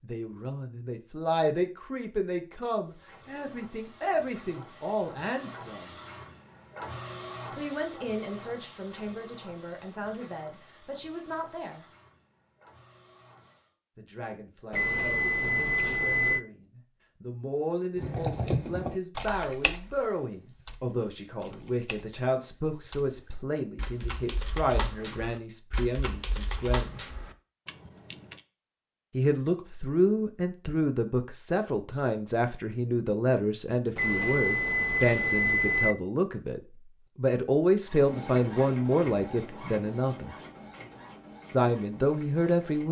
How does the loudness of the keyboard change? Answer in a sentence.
The loudness of the keyboard goes down, then up.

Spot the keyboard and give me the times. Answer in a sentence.
The keyboard can be heard from 17.9 to 28.4 s.